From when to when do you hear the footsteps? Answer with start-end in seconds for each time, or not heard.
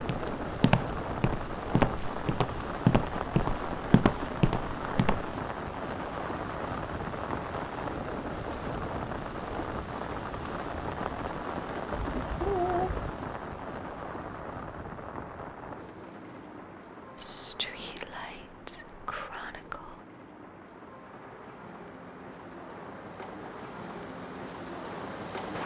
0.0-5.3.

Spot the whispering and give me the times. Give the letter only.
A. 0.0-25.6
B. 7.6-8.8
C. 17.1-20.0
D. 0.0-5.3
C.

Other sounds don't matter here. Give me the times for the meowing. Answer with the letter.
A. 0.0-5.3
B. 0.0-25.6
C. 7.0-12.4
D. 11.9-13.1
D.